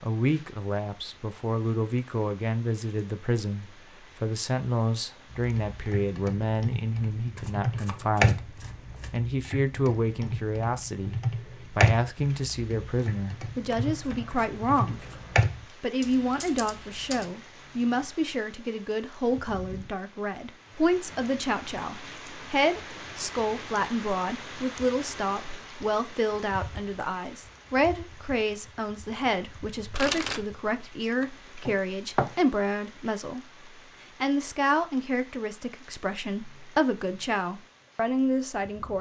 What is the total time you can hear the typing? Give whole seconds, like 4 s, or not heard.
12 s.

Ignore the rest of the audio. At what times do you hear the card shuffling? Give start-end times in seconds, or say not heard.
7.3-9.2, 13.7-15.4, 29.9-30.4, 31.0-32.4.